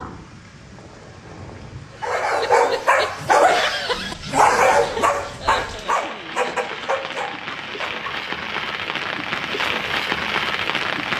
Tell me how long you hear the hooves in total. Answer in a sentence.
You can't hear the hooves here.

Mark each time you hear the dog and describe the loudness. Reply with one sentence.
You can hear the dog from 2.0 to 8.2 s, getting quieter.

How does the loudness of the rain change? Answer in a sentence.
The volume of the rain goes up.